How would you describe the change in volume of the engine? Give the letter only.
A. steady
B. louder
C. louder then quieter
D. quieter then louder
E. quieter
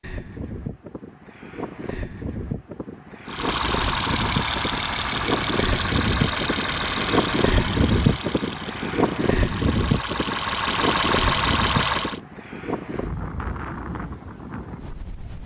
D.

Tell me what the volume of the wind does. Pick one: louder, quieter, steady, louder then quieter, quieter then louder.
louder then quieter.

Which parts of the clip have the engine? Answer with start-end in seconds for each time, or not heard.
3.2-12.2.